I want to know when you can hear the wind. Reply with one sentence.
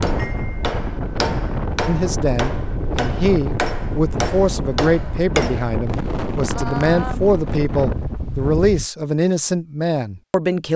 You can hear the wind from 0.0 to 8.9 s.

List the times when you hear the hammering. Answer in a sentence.
The hammering can be heard from 0.0 to 5.8 s.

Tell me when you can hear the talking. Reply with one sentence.
The talking can be heard from 1.9 to 10.7 s.